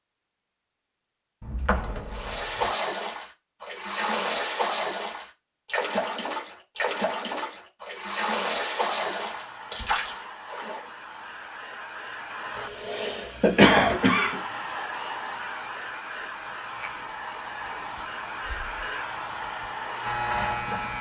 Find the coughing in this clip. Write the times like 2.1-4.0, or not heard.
12.6-14.4.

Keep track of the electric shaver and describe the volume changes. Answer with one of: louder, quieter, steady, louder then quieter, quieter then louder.
louder.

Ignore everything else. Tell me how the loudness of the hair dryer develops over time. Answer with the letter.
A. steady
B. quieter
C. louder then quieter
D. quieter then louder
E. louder
E.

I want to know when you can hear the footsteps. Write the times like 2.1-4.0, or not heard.
not heard.